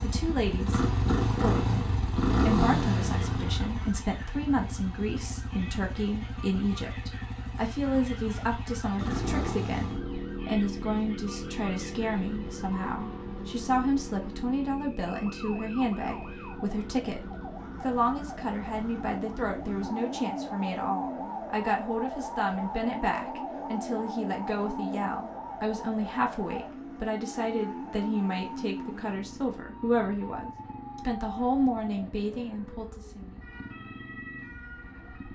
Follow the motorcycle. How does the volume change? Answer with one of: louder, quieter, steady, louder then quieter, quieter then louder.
quieter.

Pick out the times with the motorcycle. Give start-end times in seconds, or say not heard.
0.0-35.3.